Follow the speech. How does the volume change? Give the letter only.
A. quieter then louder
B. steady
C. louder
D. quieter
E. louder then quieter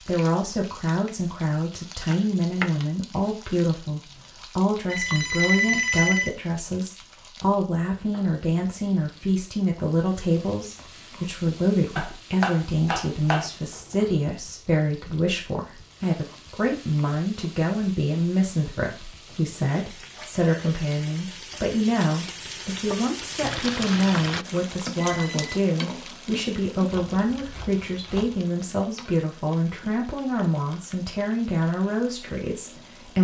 B.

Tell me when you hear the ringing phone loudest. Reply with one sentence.
The volume of the ringing phone peaks at 6 seconds.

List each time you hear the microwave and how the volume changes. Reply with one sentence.
You can't hear the microwave here.